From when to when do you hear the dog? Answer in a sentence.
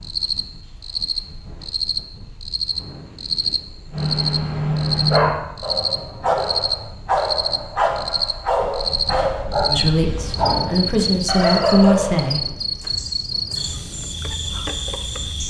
The dog can be heard from 3.9 to 13.7 s.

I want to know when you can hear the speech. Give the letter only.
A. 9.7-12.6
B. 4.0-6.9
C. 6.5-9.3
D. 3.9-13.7
A.